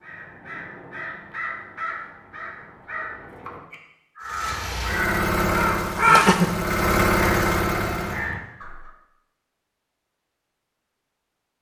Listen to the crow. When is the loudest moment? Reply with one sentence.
The loudest moment of the crow is at 6 seconds.